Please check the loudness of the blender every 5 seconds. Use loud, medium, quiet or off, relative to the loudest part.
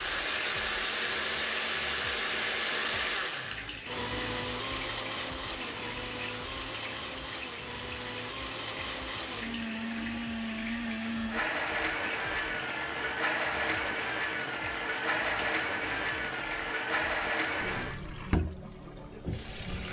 loud, medium, loud, loud.